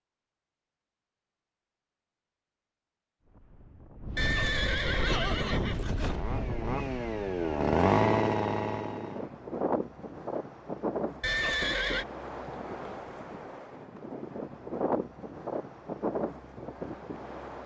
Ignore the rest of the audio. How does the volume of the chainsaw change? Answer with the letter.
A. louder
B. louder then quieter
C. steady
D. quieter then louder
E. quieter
B.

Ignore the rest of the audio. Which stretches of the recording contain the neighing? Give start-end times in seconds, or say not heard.
4.2-6.2, 11.2-12.1.